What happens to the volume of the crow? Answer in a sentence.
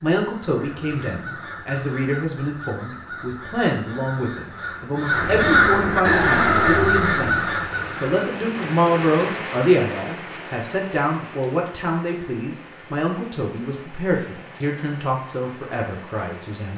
The loudness of the crow goes up.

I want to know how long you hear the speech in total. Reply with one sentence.
You can hear the speech for 17 seconds altogether.